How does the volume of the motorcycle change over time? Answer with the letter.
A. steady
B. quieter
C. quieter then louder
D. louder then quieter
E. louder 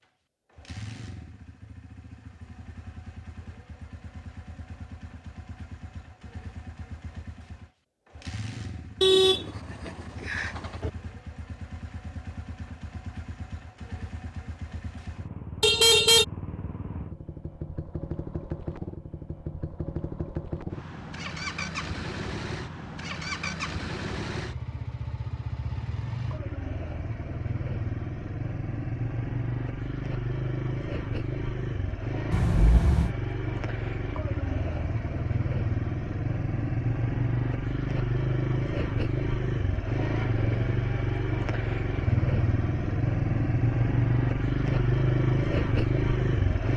E.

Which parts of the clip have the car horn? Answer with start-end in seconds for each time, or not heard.
9.0-10.9, 15.6-16.2, 32.3-33.1.